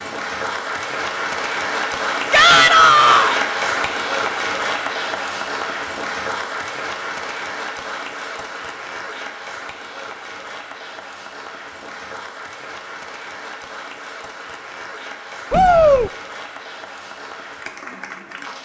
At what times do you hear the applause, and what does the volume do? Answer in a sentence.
The applause can be heard from 0.0 to 18.6 s, getting quieter.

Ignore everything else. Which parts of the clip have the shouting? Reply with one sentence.
The shouting can be heard from 2.3 to 3.4 s and from 15.5 to 16.1 s.